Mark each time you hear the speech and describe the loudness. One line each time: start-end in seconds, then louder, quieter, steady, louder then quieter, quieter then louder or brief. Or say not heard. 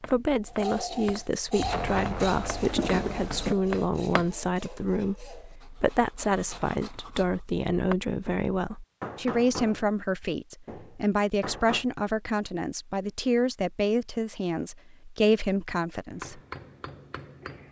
0.0-16.4 steady.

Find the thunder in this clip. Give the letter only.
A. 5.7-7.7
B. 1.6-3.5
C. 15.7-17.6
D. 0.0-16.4
B.